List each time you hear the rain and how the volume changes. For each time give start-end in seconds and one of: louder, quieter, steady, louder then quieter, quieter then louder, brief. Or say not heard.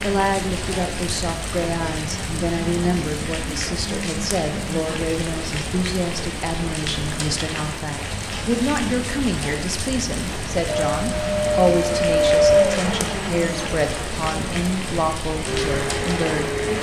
0.0-16.7 steady.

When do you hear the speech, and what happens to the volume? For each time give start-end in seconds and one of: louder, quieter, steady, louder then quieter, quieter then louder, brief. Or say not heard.
0.0-16.6 steady.